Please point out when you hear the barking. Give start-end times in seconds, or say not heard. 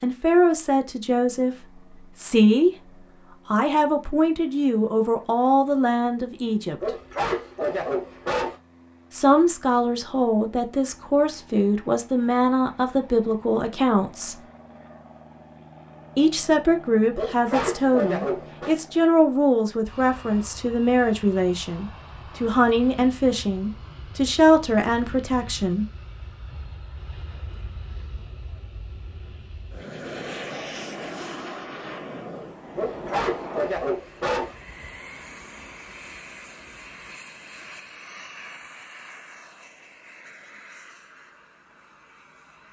6.8-8.6, 17.1-18.8, 32.8-34.5.